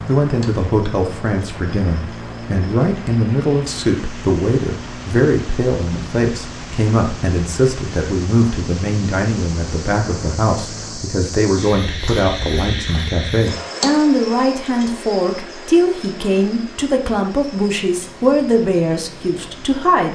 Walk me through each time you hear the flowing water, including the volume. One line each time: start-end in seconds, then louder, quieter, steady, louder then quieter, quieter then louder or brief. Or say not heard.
not heard.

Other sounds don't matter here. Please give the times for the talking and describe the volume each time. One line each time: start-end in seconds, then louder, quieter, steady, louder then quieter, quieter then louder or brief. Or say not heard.
0.1-20.1 steady.